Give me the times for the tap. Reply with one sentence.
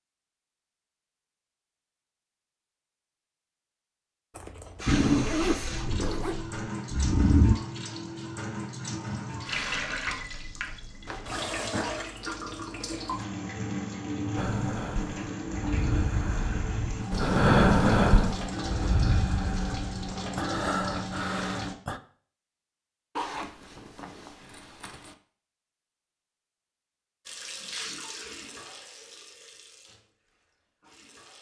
The tap can be heard from 4.8 to 21.8 s and from 27.2 to 31.3 s.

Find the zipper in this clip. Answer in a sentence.
You can hear the zipper from 4.3 to 6.5 s, from 11.1 to 12.0 s and from 23.1 to 25.1 s.